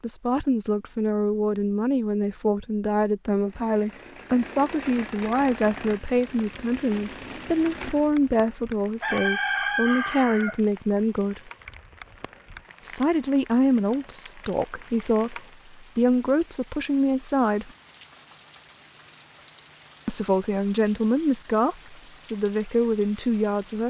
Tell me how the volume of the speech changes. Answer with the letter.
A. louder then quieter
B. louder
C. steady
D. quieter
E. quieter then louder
C.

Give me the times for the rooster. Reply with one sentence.
You can hear the rooster from 9.0 to 10.6 s.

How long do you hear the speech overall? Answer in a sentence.
The speech can be heard for 20 seconds in total.